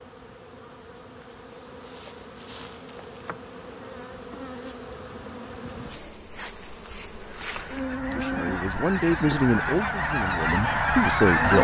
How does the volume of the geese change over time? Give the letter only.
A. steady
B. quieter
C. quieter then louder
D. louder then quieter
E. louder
E.